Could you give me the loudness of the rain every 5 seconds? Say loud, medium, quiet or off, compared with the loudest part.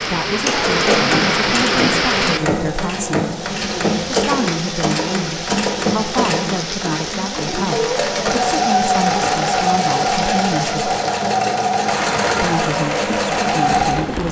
loud, medium, medium.